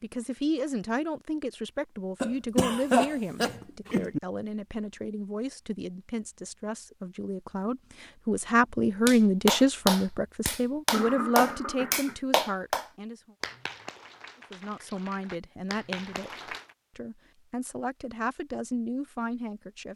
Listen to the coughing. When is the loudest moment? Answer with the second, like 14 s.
3 s.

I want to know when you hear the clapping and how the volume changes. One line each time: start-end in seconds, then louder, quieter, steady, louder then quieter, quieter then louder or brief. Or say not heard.
9.1-16.6 quieter then louder.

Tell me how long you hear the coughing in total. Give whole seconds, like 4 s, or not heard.
3 s.